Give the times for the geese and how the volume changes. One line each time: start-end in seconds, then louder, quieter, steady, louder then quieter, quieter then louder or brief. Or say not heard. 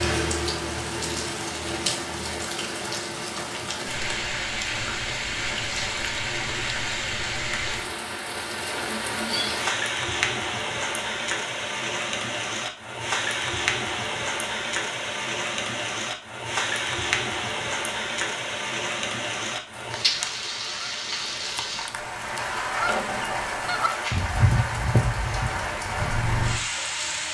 19.9-26.2 louder.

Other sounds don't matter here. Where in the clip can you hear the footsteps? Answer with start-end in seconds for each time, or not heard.
not heard.